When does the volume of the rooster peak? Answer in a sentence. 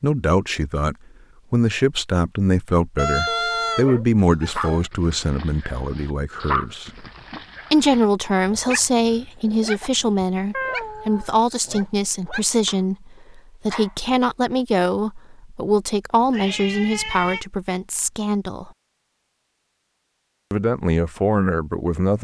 The volume of the rooster peaks at 3 seconds.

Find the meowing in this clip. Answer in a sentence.
You can hear the meowing from 3.2 to 4.8 s, from 10.5 to 11.8 s and from 16.3 to 17.4 s.